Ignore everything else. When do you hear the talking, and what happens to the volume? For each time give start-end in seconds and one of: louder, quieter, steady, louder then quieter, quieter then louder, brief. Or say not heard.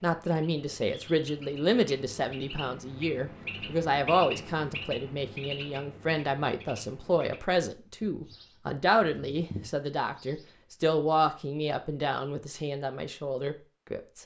0.0-14.2 steady.